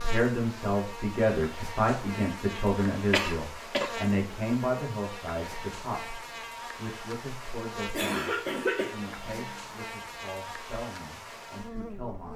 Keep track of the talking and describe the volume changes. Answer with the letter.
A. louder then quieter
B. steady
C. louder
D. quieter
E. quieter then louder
D.